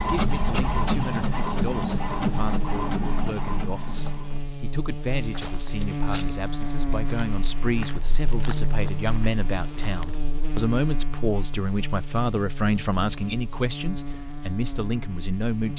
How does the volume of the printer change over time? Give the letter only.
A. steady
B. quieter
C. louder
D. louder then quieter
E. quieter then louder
B.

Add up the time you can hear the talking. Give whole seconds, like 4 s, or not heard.
16 s.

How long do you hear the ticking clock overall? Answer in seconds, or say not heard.
not heard.